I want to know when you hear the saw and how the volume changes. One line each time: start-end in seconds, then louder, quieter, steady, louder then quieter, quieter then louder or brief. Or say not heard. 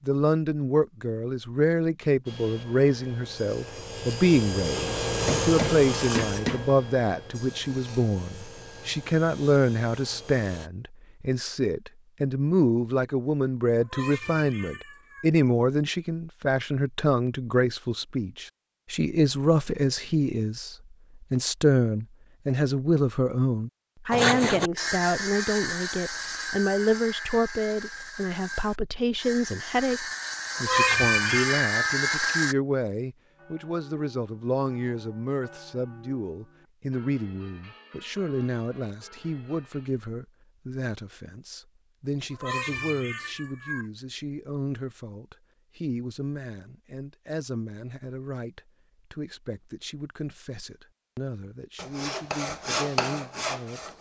2.2-10.7 louder then quieter
24.1-32.5 quieter then louder
51.8-53.9 brief.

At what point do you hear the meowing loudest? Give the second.
31 s.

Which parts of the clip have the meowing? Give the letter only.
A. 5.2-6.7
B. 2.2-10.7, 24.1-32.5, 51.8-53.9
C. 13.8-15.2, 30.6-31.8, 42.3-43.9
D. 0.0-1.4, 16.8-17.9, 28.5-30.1
C.